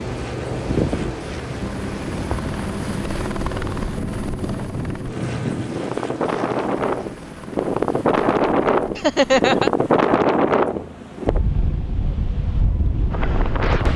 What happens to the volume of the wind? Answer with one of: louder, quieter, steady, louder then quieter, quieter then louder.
louder then quieter.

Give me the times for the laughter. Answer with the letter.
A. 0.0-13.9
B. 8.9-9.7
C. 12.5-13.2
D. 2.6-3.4
B.